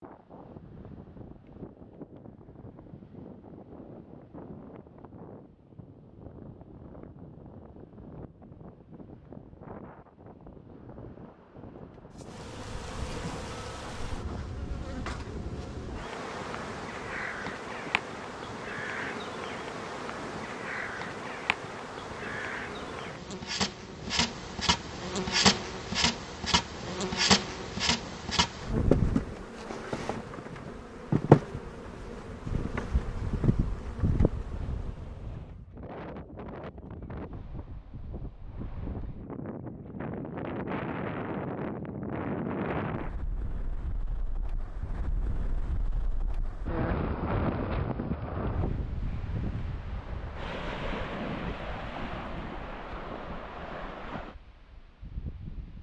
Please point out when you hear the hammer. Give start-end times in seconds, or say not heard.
not heard.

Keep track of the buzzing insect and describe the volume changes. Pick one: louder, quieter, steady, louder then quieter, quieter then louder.
louder.